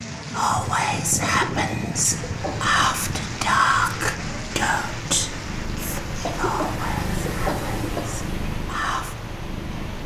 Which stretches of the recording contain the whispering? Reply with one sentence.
You can hear the whispering from 0.3 to 9.2 s.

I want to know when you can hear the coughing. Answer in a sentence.
You can hear the coughing from 1.2 to 2.9 s and from 6.2 to 8.2 s.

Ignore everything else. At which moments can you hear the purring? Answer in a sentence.
The purring can be heard from 2.2 to 10.0 s.